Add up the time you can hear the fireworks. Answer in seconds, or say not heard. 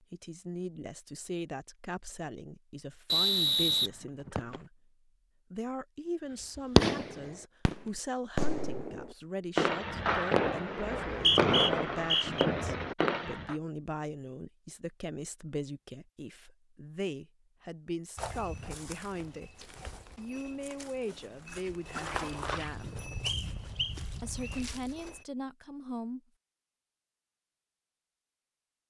7 s.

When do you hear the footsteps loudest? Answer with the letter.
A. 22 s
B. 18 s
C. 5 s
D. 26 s
A.